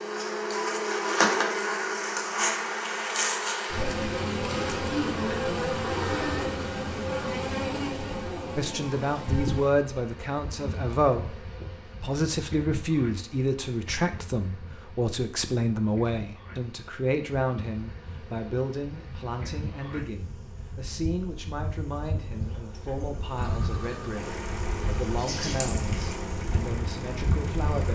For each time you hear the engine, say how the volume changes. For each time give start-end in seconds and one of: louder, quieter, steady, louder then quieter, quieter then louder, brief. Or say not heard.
23.4-27.8 steady.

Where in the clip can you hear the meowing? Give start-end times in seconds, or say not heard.
not heard.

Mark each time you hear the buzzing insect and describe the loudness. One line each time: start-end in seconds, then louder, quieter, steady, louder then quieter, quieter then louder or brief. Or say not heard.
0.0-27.8 quieter then louder.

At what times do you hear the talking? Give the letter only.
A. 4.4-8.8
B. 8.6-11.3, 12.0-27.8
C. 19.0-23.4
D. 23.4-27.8
B.